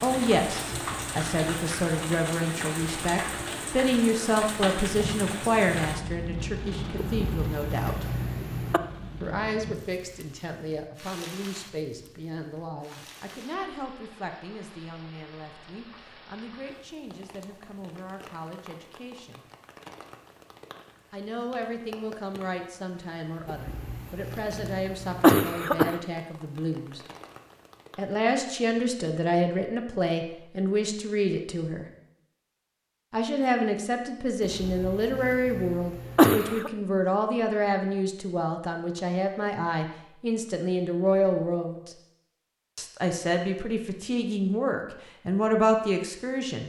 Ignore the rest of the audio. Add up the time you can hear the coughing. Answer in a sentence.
The coughing can be heard for 7 seconds in total.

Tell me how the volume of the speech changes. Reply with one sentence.
The volume of the speech goes down, then up.